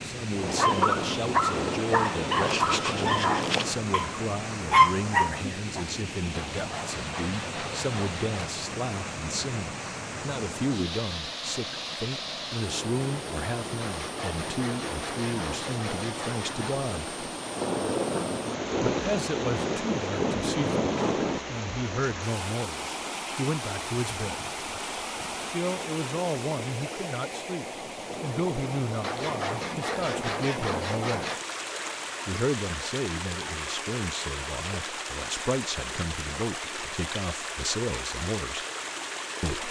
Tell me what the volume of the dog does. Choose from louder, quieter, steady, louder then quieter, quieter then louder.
quieter then louder.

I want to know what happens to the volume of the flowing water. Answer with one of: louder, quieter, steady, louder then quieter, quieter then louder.
steady.